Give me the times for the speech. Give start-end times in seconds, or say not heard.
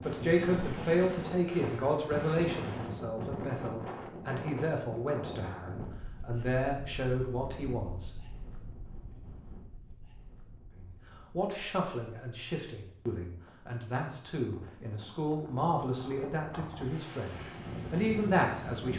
0.0-8.1, 10.8-18.9.